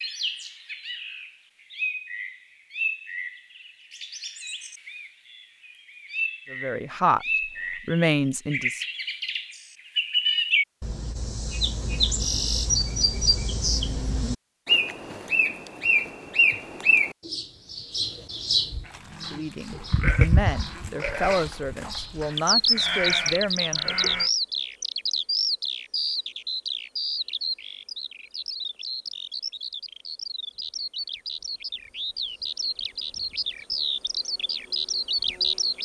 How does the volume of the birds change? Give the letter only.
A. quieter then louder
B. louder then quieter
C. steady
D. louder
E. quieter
B.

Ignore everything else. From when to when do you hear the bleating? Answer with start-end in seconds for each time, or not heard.
18.9-24.3.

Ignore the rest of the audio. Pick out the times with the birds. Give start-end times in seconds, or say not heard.
0.0-35.7.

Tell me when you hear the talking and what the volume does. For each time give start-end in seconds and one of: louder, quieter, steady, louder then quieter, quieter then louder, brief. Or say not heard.
6.5-7.2 brief
7.8-8.8 brief
19.3-23.9 steady.